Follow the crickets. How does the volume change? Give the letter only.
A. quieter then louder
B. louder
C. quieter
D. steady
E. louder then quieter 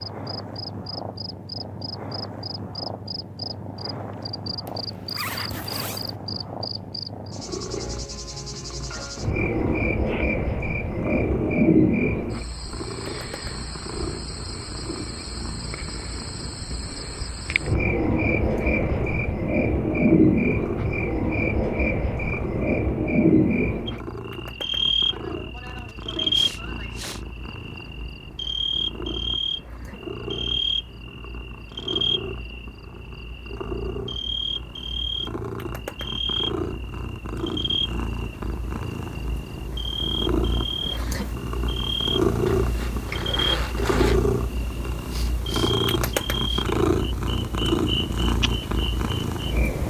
E.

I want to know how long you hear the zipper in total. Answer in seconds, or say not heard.
3 s.